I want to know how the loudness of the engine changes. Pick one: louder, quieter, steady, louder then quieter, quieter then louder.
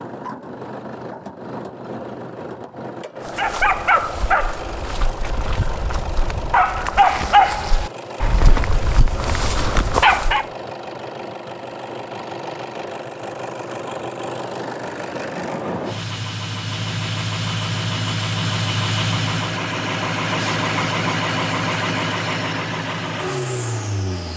louder.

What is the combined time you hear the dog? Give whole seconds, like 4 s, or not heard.
7 s.